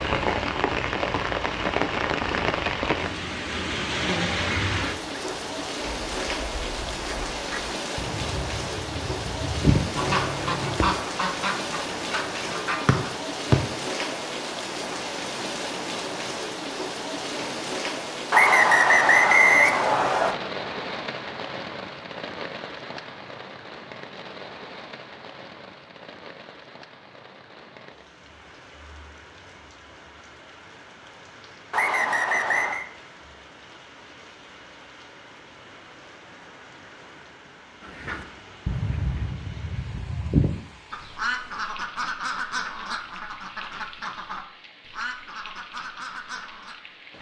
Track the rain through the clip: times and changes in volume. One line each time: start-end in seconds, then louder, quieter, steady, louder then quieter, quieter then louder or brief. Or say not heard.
0.0-47.1 quieter.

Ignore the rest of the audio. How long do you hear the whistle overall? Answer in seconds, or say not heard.
4 s.